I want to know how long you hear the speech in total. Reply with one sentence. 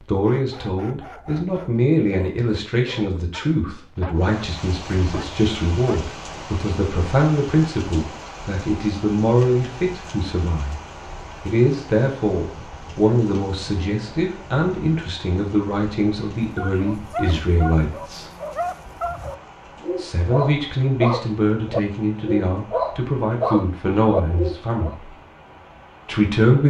The speech can be heard for 23 seconds in total.